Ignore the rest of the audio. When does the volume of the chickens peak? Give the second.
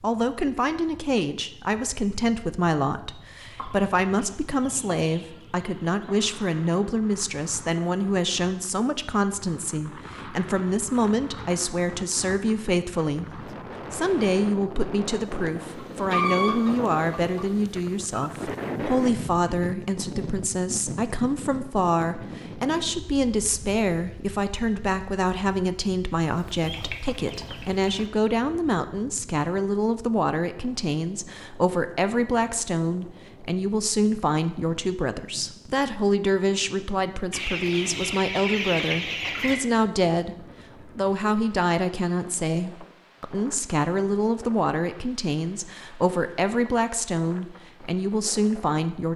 16 s.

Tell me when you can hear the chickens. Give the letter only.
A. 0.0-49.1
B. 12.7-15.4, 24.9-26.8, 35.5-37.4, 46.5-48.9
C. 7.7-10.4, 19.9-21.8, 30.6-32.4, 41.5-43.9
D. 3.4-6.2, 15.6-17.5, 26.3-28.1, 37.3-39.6
D.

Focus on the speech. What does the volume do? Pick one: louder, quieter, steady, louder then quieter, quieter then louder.
steady.